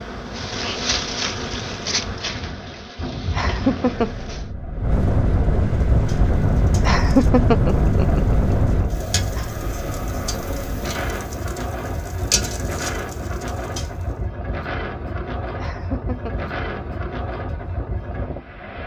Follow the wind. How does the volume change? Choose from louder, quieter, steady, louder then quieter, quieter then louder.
louder then quieter.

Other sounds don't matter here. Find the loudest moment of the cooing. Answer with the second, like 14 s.
12 s.